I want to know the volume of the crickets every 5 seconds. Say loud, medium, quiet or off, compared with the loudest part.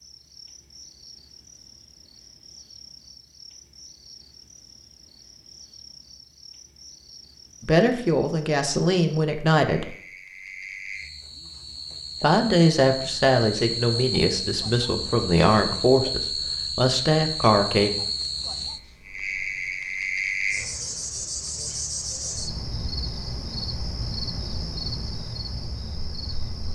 quiet, quiet, loud, loud, loud, medium.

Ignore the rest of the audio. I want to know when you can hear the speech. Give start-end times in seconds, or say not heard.
7.6-9.9, 12.2-17.9.